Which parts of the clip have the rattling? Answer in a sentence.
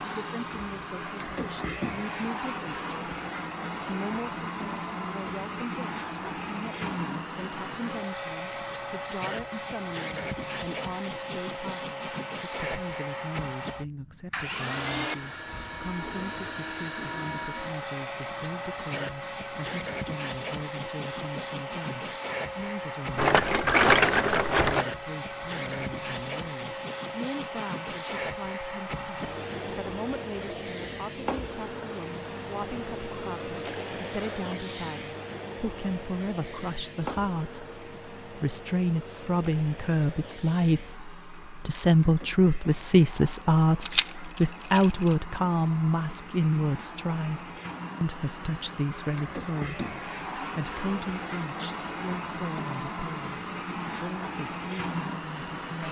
The rattling can be heard from 23.1 to 24.9 s and from 43.8 to 45.1 s.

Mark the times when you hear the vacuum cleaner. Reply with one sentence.
You can hear the vacuum cleaner from 0.0 to 55.8 s.